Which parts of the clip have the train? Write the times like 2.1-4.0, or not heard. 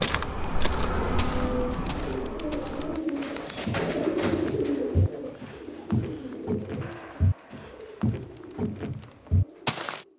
0.0-3.0.